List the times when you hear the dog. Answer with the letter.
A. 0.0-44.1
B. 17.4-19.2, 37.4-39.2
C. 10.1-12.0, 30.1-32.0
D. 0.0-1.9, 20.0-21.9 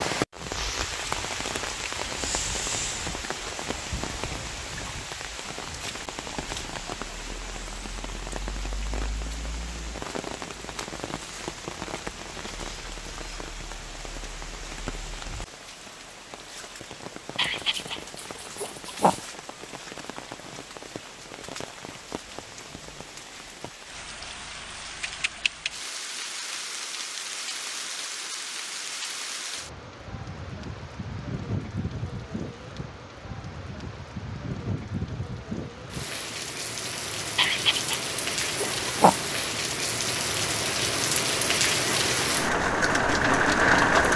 B.